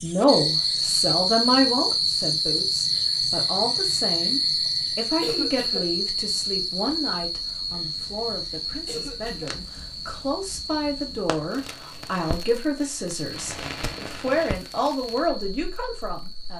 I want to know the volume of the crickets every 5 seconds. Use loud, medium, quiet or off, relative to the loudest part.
loud, medium, quiet, quiet.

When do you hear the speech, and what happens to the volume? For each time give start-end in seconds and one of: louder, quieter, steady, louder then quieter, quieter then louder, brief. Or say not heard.
0.0-16.5 quieter then louder.